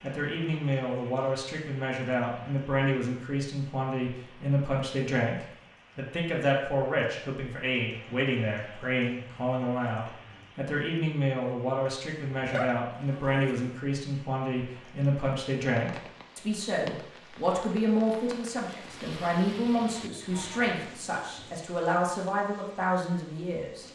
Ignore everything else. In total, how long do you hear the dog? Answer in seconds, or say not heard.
2 s.